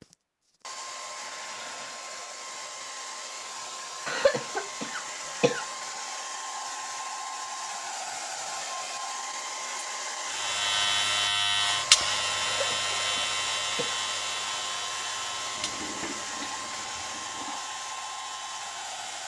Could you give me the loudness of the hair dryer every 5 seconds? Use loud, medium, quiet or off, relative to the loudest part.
medium, loud, loud, loud.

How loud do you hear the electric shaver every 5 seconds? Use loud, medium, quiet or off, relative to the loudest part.
off, off, loud, quiet.